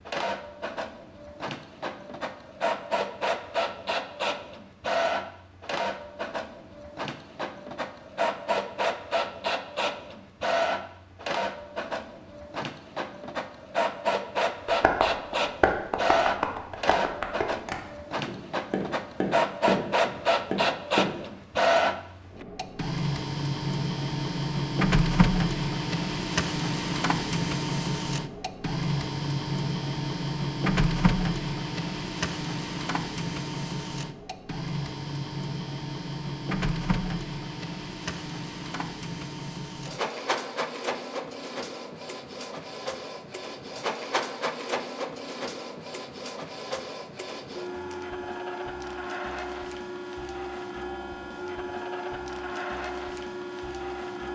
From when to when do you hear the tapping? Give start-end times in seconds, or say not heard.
14.7-21.1.